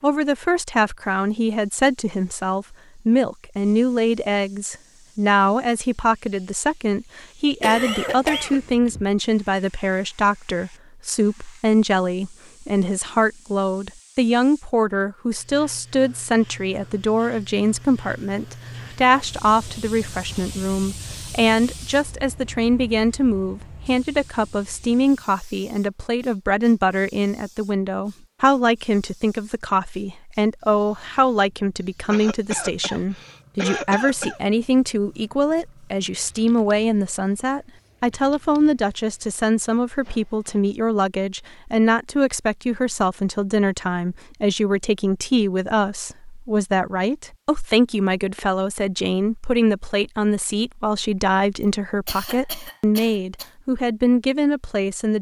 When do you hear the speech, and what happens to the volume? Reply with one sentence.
The speech can be heard from 0.0 to 55.1 s, at a steady volume.